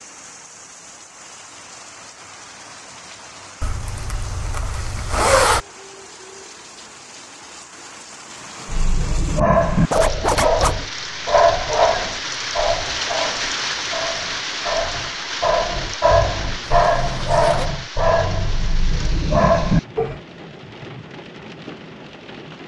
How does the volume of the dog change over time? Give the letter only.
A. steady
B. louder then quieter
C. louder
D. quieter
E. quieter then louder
E.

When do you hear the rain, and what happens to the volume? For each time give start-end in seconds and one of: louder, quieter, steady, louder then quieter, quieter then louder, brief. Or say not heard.
0.0-22.6 louder then quieter.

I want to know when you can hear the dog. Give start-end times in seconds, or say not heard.
8.7-20.2.